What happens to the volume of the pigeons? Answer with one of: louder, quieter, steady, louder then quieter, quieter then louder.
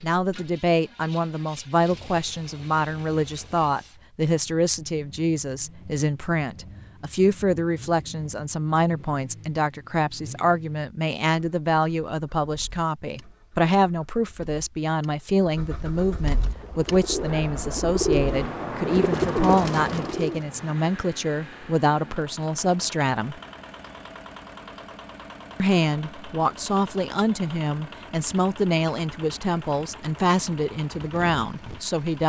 louder.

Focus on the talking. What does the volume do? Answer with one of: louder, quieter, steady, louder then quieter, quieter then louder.
steady.